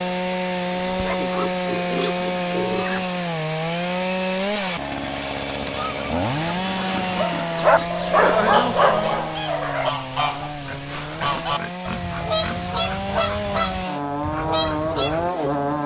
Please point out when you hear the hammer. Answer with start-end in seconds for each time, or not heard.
not heard.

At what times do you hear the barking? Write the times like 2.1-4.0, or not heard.
7.1-10.6.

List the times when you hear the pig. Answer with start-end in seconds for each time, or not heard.
0.7-3.2, 6.7-8.4, 10.7-12.7.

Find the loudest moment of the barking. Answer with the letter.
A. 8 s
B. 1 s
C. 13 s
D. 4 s
A.